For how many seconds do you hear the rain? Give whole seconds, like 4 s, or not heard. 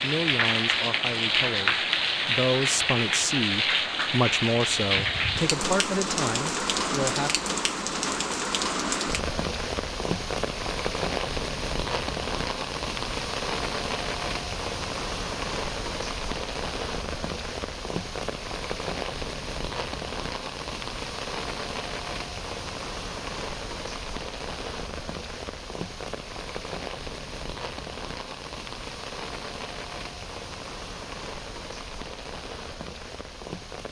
34 s.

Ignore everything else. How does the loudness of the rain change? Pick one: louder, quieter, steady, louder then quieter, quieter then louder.
quieter.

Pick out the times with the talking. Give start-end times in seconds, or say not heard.
0.0-7.3.